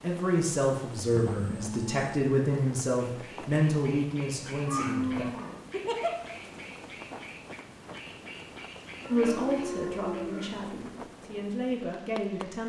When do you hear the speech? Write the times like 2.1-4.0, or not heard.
0.0-5.2, 9.1-12.6.